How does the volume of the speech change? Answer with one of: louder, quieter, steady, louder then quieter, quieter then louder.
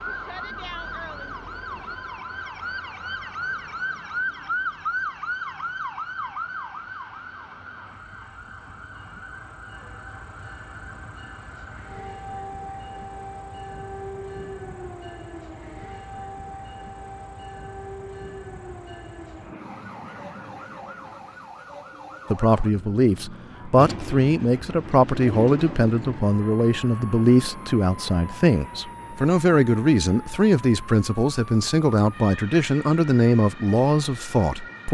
steady.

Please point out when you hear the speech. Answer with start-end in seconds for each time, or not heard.
22.3-34.8.